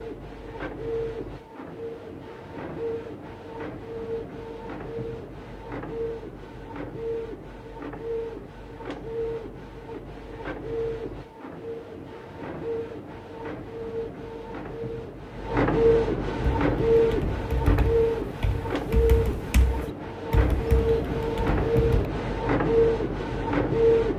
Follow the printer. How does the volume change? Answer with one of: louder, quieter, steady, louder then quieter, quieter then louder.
louder.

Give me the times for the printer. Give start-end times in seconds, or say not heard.
0.0-24.1.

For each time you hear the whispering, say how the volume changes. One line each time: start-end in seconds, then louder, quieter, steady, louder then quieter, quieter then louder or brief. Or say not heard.
not heard.